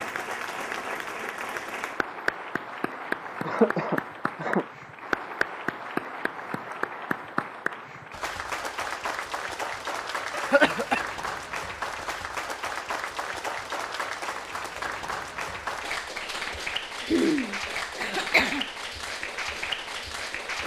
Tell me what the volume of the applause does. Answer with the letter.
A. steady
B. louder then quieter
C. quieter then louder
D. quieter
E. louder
A.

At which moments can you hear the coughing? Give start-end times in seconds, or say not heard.
3.5-4.7, 10.3-11.0, 17.1-18.6.